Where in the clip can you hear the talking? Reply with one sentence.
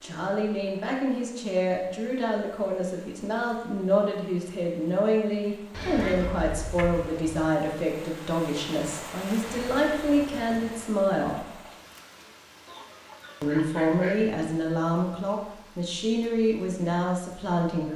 You can hear the talking from 0.0 to 11.5 s and from 13.4 to 17.9 s.